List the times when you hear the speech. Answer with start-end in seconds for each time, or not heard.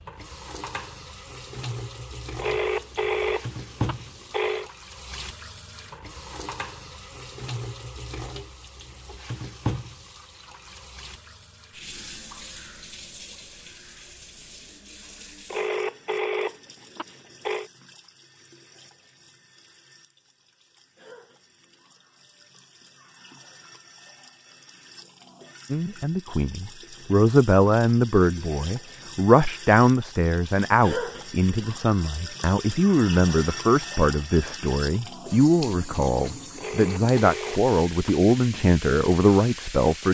25.7-40.0.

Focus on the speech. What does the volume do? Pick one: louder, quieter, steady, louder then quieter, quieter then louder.
steady.